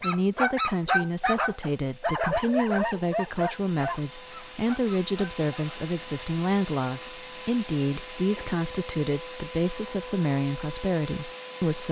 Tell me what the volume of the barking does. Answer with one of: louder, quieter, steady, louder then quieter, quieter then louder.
quieter.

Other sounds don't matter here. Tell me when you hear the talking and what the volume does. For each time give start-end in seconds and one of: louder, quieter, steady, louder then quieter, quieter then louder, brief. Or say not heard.
0.0-11.8 steady.